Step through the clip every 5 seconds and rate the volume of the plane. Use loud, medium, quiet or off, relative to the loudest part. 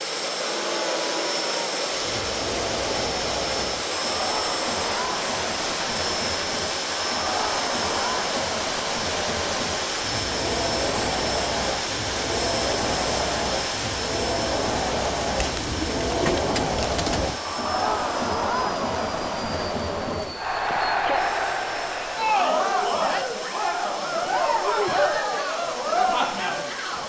loud, loud, loud, medium, medium, medium.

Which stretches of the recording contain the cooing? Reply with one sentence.
You can hear the cooing from 15.3 to 17.4 s.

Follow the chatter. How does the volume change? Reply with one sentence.
The volume of the chatter goes up.